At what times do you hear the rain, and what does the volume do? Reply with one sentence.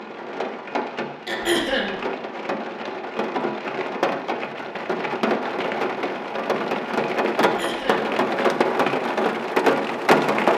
You can hear the rain from 0.0 to 10.5 s, getting louder.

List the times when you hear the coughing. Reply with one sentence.
The coughing can be heard from 1.2 to 1.9 s and from 7.4 to 8.1 s.